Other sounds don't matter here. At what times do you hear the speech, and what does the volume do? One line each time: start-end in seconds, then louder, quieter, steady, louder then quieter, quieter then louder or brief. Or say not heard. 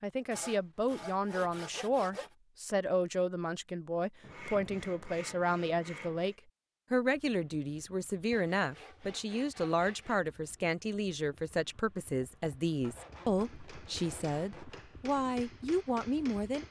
0.0-16.6 steady.